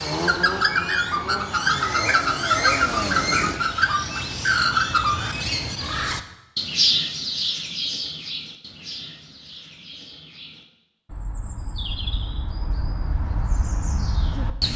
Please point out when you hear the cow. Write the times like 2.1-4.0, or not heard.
not heard.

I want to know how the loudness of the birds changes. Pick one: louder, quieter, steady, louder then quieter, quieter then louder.
quieter then louder.